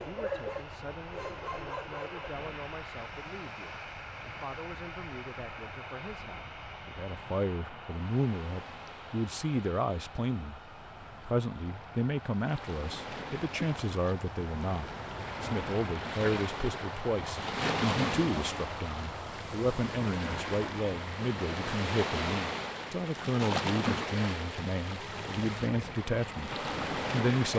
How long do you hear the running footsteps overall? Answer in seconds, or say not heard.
not heard.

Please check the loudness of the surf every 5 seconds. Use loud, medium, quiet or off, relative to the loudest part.
quiet, quiet, medium, loud, loud, loud.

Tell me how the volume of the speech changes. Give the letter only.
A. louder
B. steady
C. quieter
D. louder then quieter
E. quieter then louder
A.